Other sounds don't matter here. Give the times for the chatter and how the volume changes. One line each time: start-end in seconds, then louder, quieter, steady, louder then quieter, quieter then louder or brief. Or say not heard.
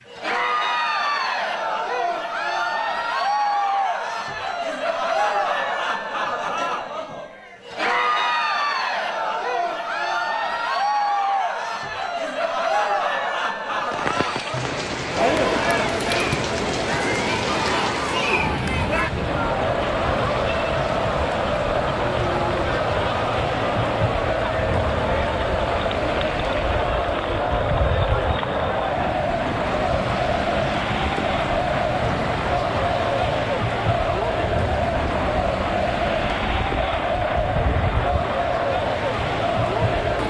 0.1-40.2 steady.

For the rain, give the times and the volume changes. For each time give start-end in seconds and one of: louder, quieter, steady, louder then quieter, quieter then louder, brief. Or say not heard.
13.7-40.2 steady.